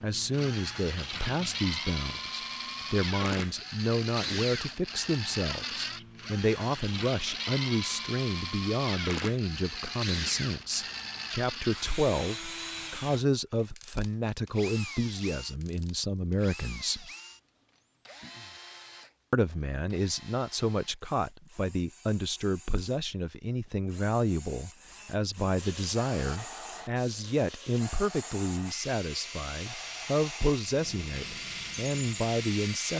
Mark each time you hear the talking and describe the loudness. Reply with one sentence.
You can hear the talking from 0.0 to 17.1 s, at a steady volume; and from 19.3 to 32.9 s, at a steady volume.